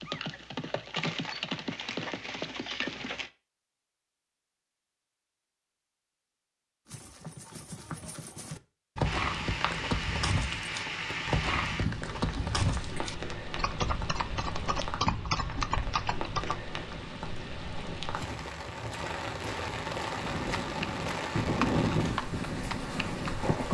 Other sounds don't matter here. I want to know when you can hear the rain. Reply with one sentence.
You can hear the rain from 9.1 to 23.7 s.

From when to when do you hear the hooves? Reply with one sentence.
You can hear the hooves from 0.0 to 3.3 s, from 6.8 to 16.6 s and from 20.1 to 23.7 s.